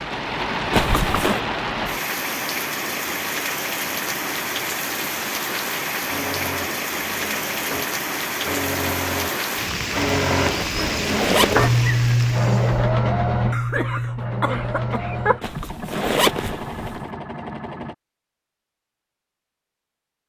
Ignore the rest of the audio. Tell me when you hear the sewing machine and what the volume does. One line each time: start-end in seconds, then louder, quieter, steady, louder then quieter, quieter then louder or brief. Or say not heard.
6.0-17.9 louder then quieter.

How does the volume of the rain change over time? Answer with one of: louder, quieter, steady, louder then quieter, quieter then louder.
steady.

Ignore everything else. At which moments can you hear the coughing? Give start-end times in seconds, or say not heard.
13.5-15.4.